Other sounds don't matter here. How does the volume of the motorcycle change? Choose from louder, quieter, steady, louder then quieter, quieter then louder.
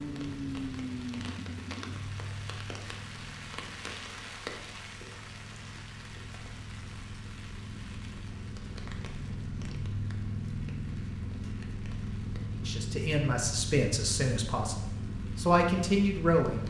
quieter then louder.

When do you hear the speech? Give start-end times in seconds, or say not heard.
12.6-16.6.